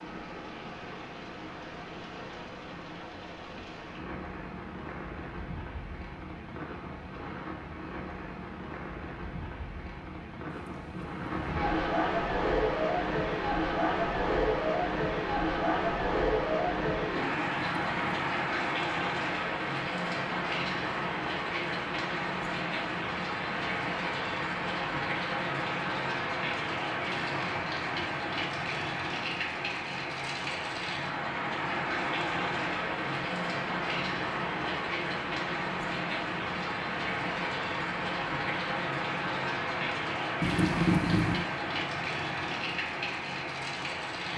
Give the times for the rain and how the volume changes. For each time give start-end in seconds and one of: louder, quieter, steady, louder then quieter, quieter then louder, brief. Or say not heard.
0.0-44.3 louder.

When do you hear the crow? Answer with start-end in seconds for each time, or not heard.
not heard.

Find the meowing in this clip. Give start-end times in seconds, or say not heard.
10.4-11.4, 17.6-18.3, 40.4-41.5.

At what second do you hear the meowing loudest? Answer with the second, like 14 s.
41 s.